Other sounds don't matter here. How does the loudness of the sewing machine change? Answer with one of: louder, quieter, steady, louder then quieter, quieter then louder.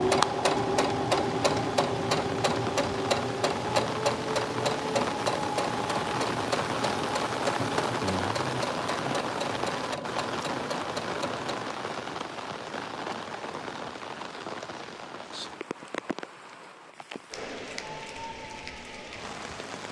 quieter.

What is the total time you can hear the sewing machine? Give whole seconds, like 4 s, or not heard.
12 s.